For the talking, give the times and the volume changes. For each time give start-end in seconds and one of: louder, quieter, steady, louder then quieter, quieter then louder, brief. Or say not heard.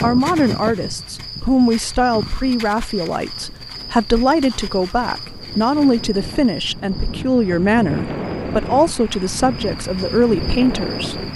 0.0-11.3 steady.